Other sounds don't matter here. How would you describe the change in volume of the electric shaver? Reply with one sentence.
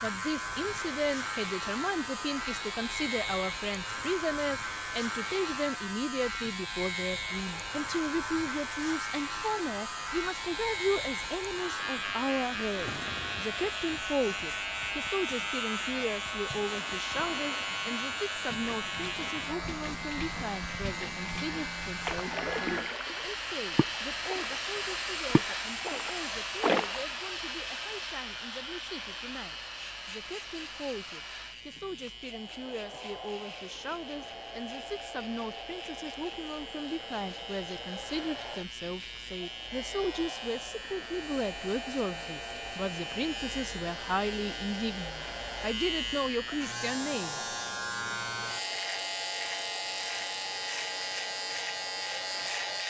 The loudness of the electric shaver goes down, then up.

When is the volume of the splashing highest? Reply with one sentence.
The loudest moment of the splashing is at 27 seconds.